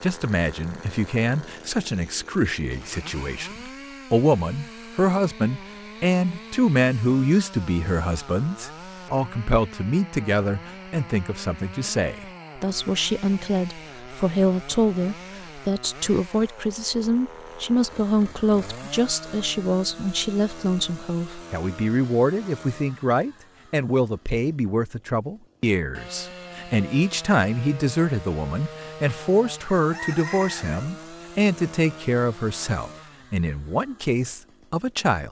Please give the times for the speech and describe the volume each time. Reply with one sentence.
The speech can be heard from 0.0 to 35.2 s, at a steady volume.